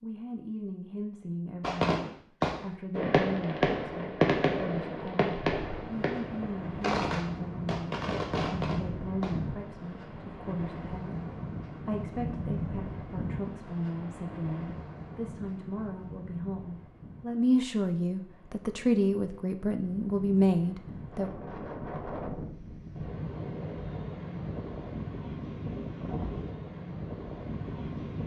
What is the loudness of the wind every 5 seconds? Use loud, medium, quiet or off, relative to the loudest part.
off, loud, loud, medium, loud, loud.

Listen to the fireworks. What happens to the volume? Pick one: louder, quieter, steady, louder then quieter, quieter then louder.
quieter.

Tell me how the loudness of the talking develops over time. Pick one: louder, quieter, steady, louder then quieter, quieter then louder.
louder.